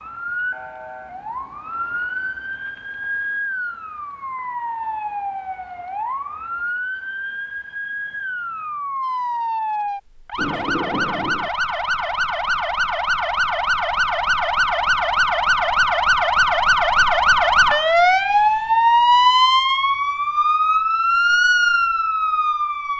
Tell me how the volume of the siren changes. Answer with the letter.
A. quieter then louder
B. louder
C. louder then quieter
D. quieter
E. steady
B.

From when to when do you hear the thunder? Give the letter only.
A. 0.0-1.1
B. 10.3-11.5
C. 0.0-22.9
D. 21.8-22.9
B.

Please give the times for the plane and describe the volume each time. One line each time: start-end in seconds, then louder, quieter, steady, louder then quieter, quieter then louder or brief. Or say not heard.
not heard.